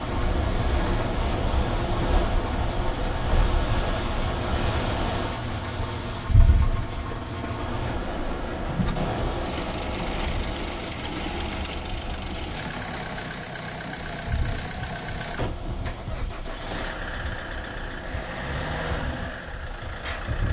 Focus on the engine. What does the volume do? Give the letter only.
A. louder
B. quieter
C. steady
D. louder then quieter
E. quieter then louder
C.